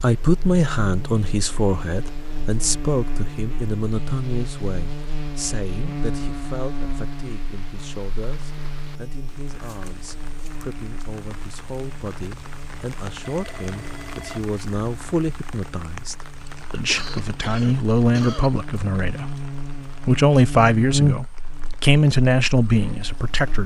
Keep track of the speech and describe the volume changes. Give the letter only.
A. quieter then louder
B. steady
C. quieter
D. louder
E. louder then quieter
A.